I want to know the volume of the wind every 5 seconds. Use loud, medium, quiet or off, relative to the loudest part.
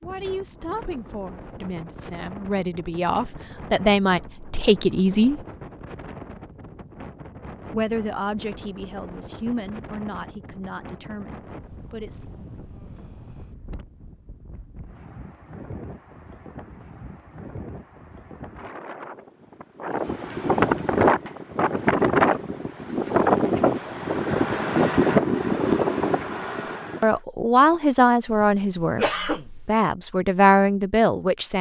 quiet, quiet, quiet, quiet, loud, loud, off.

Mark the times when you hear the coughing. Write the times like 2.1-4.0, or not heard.
28.3-29.7.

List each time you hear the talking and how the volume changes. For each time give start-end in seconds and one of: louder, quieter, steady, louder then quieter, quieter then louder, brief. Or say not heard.
0.0-5.4 louder
7.7-12.3 quieter
27.0-31.5 quieter then louder.